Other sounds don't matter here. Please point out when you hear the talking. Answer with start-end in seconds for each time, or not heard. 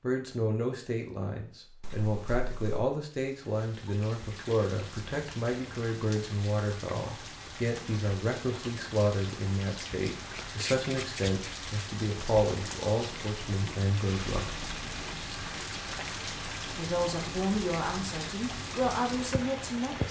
0.0-14.5, 16.8-20.0.